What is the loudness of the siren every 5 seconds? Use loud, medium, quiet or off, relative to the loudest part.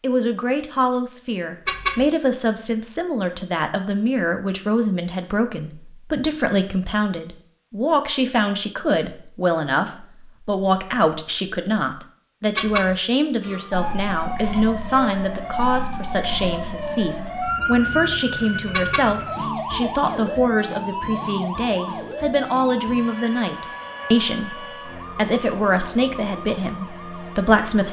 off, off, loud, loud, loud, medium.